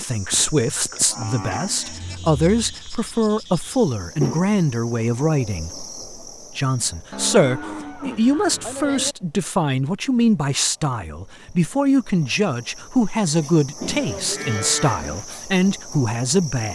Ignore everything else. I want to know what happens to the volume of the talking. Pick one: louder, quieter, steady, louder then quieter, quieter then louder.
steady.